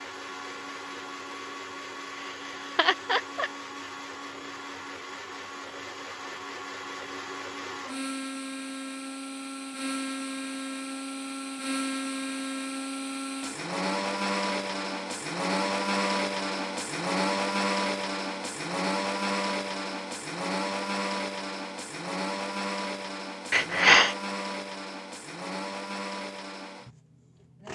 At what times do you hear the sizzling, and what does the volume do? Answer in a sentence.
The sizzling can't be heard in this clip.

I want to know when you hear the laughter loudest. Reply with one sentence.
The volume of the laughter peaks at 24 seconds.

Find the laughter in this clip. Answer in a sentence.
The laughter can be heard from 2.1 to 3.5 s and from 23.5 to 24.1 s.